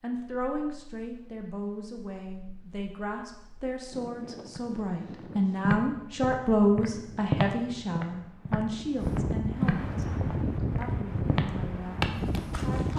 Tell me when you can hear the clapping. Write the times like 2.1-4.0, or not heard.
not heard.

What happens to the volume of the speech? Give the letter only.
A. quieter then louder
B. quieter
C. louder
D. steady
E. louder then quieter
E.